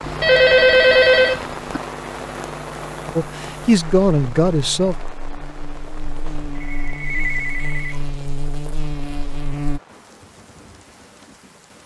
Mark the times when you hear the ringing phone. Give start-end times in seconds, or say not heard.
0.1-1.8, 6.2-8.1.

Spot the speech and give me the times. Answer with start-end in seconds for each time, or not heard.
3.1-5.0.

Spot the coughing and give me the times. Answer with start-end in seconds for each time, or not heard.
not heard.